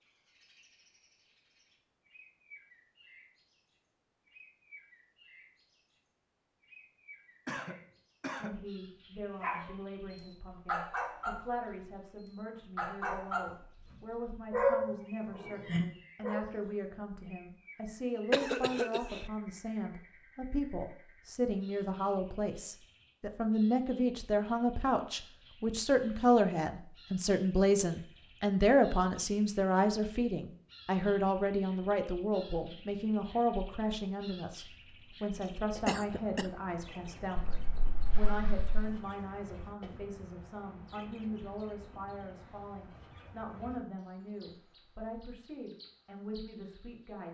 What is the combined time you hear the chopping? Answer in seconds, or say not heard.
not heard.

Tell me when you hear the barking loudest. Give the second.
15 s.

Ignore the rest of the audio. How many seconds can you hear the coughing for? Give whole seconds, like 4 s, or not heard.
3 s.